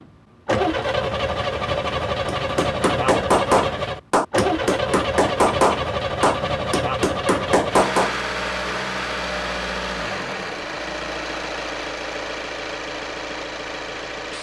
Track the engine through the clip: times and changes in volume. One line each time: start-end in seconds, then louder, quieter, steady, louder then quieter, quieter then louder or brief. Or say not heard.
0.0-14.3 quieter.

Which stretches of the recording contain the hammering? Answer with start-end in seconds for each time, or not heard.
2.2-8.2.